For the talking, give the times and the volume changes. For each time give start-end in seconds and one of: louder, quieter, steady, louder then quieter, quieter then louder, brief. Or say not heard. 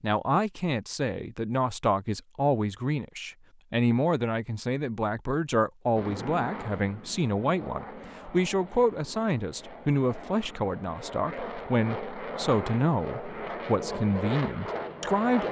0.0-15.4 steady.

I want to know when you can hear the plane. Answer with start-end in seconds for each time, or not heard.
6.0-15.4.